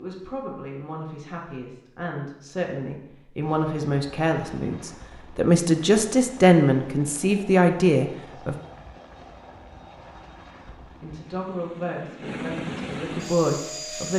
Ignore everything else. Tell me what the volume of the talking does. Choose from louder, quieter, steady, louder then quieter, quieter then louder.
louder then quieter.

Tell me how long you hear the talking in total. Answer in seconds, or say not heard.
12 s.